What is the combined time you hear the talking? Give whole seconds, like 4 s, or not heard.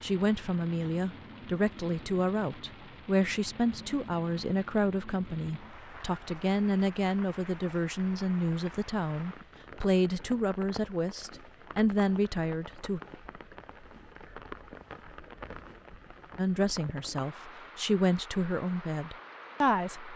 17 s.